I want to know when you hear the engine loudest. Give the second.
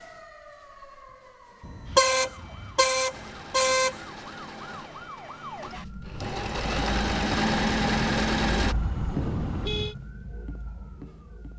8 s.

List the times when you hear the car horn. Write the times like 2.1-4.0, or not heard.
1.6-4.0, 8.6-9.9.